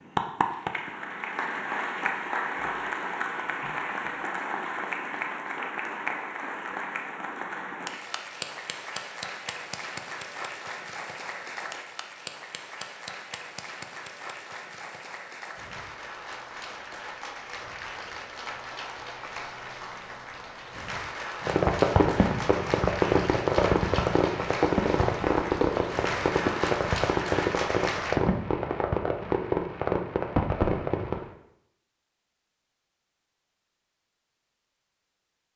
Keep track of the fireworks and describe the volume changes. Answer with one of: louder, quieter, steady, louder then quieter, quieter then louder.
steady.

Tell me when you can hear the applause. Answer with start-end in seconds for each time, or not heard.
0.0-28.2.